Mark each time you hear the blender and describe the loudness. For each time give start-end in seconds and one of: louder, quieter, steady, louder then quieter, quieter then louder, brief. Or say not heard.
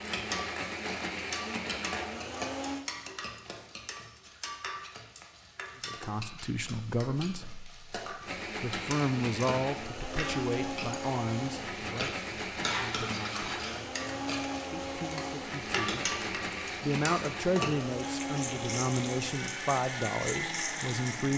0.0-2.9 brief
8.2-21.3 steady.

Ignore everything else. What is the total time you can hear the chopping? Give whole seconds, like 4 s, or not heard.
not heard.